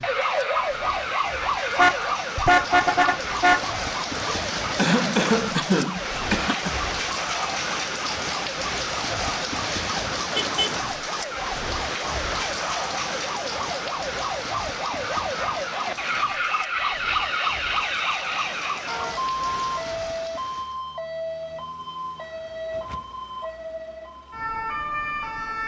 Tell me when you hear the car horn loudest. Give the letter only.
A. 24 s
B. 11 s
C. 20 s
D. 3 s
D.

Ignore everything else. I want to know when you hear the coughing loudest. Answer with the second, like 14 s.
5 s.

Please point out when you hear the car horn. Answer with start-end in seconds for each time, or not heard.
1.8-3.6, 10.3-10.8, 18.9-20.1.